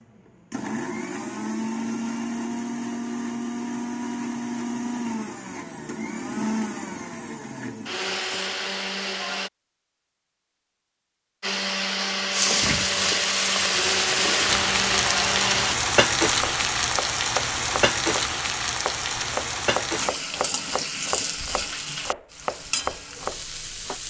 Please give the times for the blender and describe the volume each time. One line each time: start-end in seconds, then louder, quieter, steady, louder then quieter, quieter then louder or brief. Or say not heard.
0.0-9.5 steady
11.4-15.8 steady.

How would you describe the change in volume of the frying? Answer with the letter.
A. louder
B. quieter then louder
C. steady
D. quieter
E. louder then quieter
D.